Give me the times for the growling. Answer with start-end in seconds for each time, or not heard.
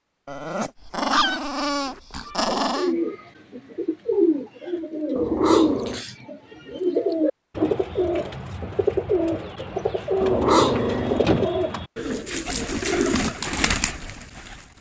0.2-2.9, 5.2-6.0, 10.2-11.5.